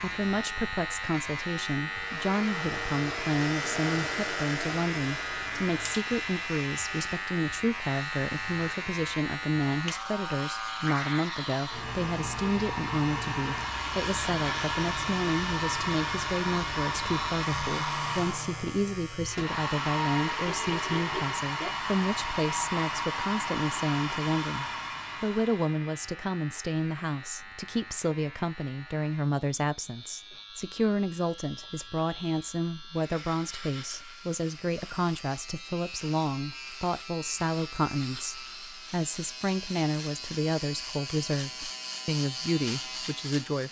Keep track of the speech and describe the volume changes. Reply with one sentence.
The volume of the speech stays about the same.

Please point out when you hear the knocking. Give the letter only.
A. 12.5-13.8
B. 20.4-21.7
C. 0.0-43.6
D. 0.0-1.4
B.